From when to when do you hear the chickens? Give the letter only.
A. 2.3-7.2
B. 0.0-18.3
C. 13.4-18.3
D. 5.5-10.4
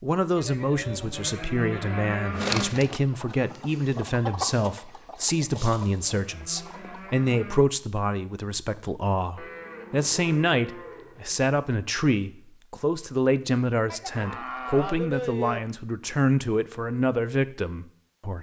A.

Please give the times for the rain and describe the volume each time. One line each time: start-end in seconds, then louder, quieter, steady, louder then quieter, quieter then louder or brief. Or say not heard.
not heard.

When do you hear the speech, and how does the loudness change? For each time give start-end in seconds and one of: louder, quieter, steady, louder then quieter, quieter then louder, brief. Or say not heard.
0.0-18.3 steady.